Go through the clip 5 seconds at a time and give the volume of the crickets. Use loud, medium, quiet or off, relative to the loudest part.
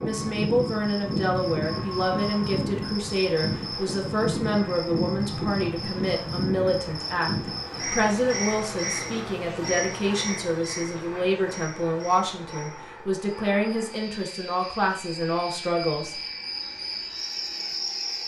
loud, loud, medium, loud.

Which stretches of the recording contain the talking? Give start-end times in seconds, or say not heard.
0.0-16.2.